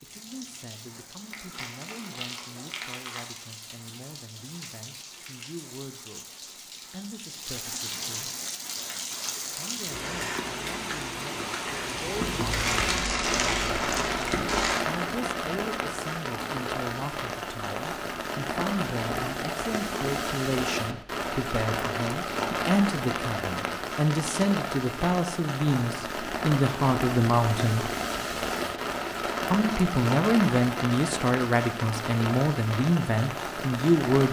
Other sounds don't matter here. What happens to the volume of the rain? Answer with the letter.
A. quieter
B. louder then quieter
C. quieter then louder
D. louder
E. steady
D.